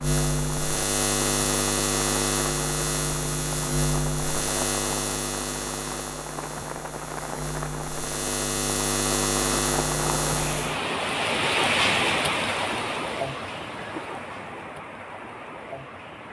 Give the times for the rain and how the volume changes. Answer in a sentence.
You can hear the rain from 0.0 to 16.2 s, getting louder then quieter.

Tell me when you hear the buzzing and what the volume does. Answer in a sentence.
The buzzing can be heard from 0.0 to 10.8 s, getting quieter then louder.